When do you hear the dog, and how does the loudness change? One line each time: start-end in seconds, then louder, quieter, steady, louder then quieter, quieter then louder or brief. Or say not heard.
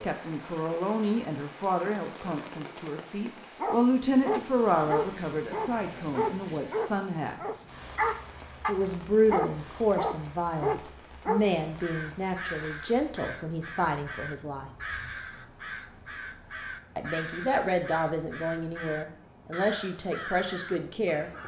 3.5-11.4 steady.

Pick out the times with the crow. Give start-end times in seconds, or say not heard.
11.7-21.4.